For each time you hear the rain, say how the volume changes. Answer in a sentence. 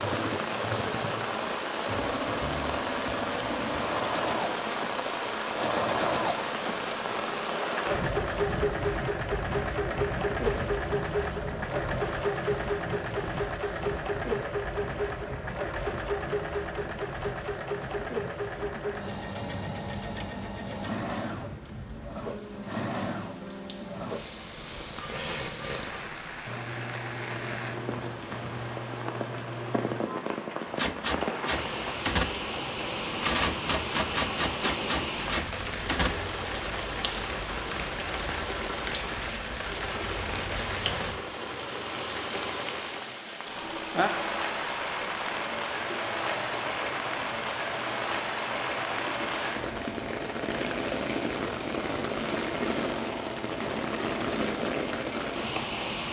The rain can be heard from 0.0 to 56.0 s, getting quieter then louder.